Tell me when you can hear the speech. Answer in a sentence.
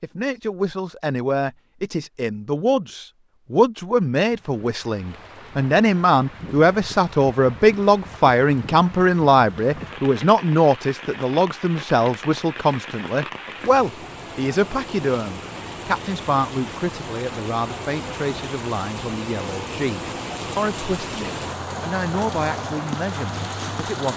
The speech can be heard from 0.0 to 24.1 s.